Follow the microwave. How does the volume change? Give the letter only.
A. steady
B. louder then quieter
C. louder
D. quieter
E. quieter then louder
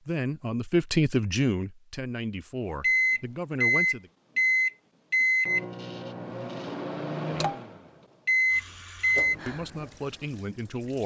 E.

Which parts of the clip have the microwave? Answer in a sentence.
You can hear the microwave from 2.8 to 9.3 s.